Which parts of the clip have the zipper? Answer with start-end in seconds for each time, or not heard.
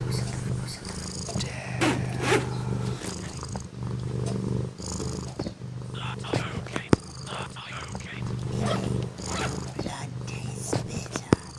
1.8-3.1, 8.2-9.8.